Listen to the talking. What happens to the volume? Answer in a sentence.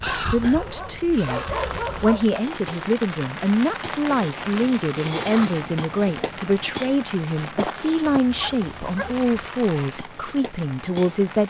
The volume of the talking stays about the same.